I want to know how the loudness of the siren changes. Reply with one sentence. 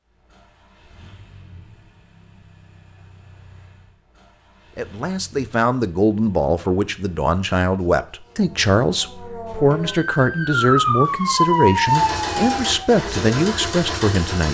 The loudness of the siren goes up.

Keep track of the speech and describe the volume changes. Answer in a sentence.
The volume of the speech stays about the same.